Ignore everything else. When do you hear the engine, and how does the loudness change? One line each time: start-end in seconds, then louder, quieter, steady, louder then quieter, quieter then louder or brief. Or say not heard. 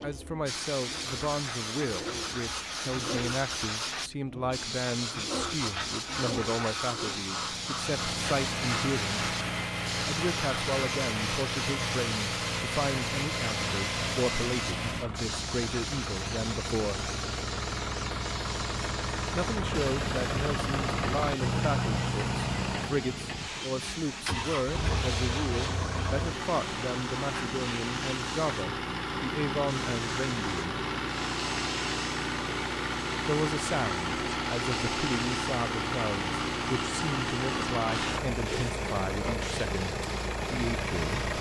0.0-41.3 louder.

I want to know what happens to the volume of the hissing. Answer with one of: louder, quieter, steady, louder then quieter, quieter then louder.
quieter.